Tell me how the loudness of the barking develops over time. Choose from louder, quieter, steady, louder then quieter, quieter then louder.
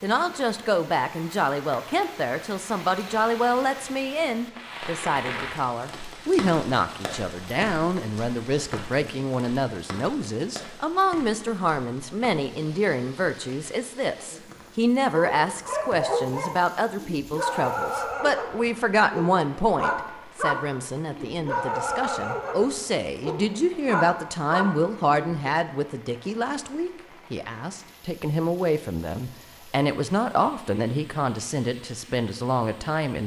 steady.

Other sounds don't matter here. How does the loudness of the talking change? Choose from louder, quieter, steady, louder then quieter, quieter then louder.
steady.